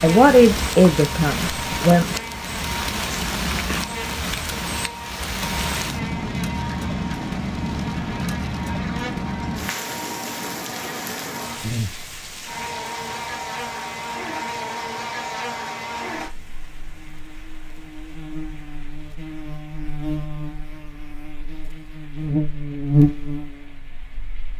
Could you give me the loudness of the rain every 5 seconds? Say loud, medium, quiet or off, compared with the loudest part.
loud, loud, medium, quiet, quiet.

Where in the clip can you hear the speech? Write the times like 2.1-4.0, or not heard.
0.0-2.0.